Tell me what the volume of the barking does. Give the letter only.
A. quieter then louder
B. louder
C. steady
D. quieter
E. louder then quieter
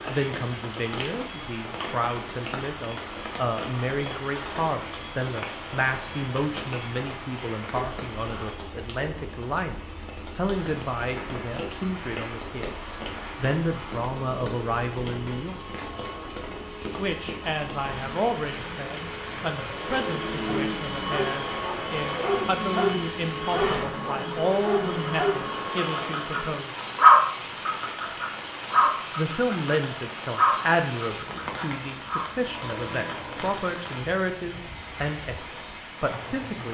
E.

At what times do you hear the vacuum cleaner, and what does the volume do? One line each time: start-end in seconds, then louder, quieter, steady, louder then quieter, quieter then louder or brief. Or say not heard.
0.0-8.7 steady
10.4-26.6 louder.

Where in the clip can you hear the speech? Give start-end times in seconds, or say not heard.
0.0-15.6, 16.9-26.8, 29.1-36.6.